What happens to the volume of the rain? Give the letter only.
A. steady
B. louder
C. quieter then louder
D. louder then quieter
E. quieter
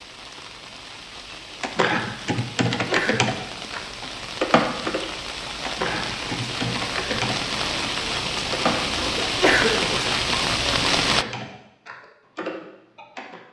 B.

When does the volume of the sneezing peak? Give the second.
10 s.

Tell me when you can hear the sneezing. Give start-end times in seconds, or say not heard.
2.7-3.3, 9.2-10.0.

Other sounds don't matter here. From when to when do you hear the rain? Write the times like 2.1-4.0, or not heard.
0.0-11.2.